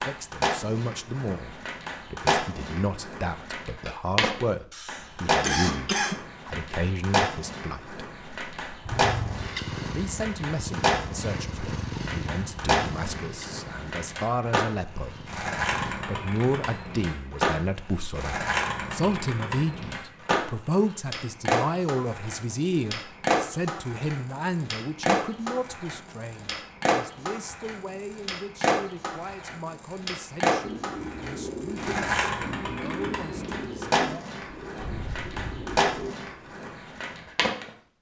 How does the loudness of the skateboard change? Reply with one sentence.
The volume of the skateboard stays about the same.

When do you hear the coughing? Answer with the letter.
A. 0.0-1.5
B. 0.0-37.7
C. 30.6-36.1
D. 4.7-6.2
D.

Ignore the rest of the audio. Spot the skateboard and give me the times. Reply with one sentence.
You can hear the skateboard from 0.0 to 37.7 s.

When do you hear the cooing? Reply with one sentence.
The cooing can be heard from 30.6 to 36.1 s.